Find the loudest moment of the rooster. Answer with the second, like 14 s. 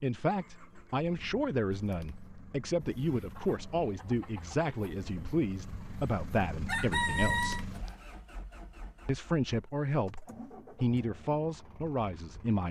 7 s.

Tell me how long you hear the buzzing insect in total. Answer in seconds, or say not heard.
not heard.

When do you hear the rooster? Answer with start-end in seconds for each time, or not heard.
2.8-7.7.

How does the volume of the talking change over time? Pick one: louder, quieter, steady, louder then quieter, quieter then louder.
steady.